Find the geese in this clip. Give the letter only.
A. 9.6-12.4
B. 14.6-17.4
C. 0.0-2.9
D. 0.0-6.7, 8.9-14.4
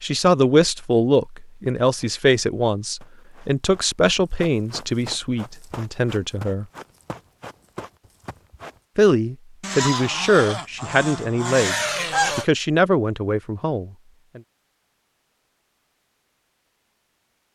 A.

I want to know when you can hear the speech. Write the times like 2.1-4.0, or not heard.
0.0-6.7, 8.9-14.4.